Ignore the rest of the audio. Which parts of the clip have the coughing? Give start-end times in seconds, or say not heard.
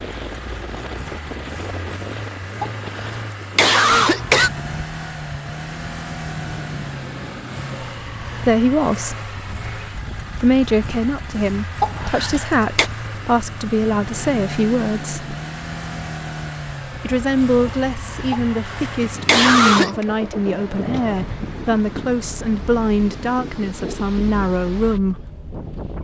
2.6-4.5, 11.8-12.9, 18.3-20.1.